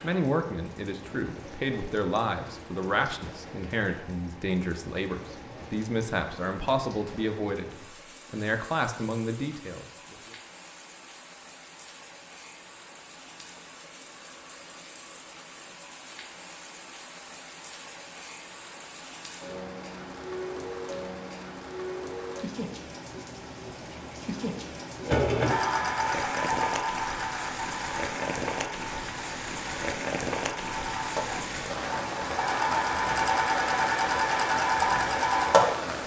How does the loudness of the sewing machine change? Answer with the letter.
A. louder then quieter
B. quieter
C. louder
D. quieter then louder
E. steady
D.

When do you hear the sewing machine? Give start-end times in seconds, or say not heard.
25.1-35.9.